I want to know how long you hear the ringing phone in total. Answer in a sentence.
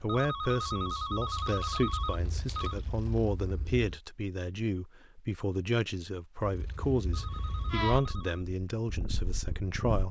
You can hear the ringing phone for 4 seconds altogether.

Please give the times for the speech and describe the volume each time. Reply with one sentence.
You can hear the speech from 0.0 to 10.0 s, at a steady volume.